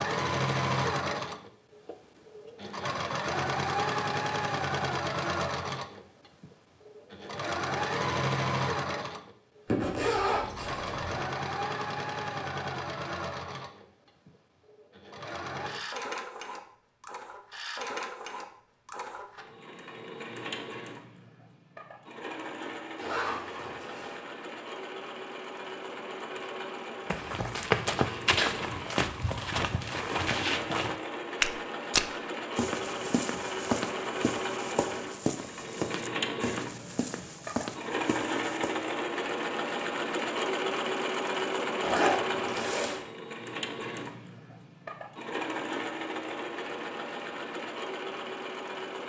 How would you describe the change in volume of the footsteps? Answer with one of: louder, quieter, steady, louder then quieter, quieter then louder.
quieter.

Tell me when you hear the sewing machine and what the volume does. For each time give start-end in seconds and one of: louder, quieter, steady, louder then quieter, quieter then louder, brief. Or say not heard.
0.0-49.0 quieter then louder.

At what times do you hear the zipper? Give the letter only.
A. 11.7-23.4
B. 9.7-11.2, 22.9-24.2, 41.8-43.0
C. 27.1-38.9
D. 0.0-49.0
B.